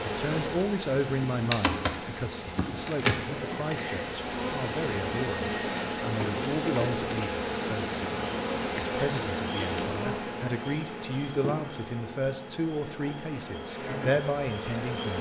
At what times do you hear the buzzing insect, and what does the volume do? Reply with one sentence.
You can hear the buzzing insect from 0.0 to 15.1 s, getting quieter.